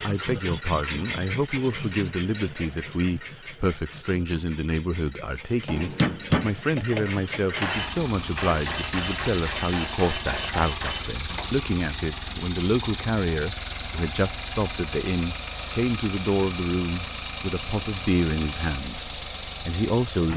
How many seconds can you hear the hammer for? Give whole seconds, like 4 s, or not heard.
6 s.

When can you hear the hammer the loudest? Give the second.
6 s.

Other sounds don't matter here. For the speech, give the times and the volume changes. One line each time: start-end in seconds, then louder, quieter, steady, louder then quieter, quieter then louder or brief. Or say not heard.
0.1-20.3 steady.